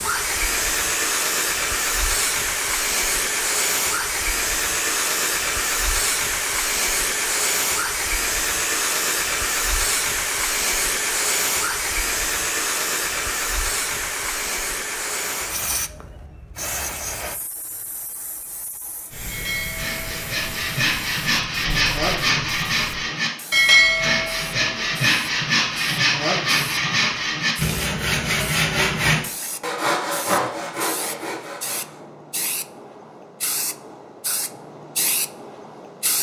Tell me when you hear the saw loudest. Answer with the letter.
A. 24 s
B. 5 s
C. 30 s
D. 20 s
A.